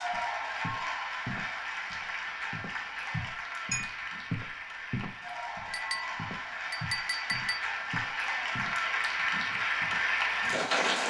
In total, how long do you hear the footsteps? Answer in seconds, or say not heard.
10 s.